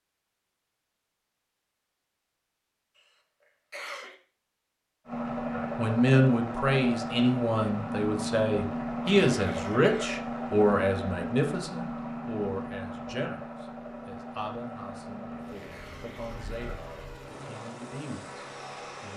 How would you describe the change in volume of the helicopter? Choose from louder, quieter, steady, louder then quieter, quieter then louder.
quieter.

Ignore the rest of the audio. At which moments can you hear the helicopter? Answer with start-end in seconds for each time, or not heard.
5.0-19.1.